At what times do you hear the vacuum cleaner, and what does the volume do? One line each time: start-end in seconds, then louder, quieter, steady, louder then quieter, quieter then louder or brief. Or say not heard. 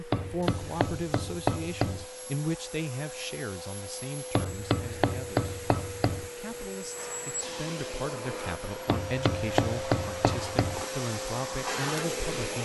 0.0-12.5 louder.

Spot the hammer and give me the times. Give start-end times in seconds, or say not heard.
0.1-2.0, 4.3-6.3, 8.8-10.8.